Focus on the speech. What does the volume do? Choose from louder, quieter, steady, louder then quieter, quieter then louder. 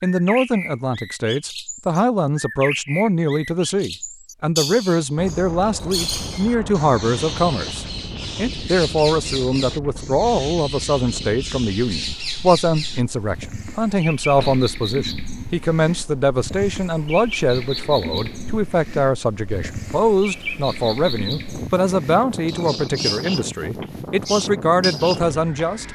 steady.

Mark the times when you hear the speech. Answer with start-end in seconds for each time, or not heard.
0.0-25.9.